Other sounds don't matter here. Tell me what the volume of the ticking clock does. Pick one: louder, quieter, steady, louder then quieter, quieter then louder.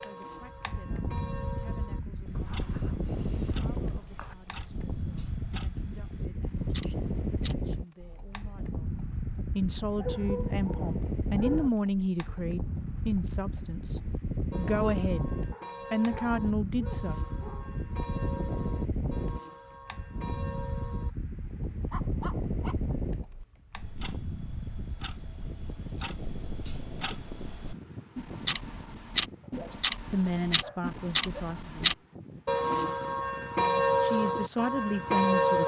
louder.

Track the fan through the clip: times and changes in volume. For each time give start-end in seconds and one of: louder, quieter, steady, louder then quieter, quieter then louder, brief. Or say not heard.
0.0-35.6 quieter.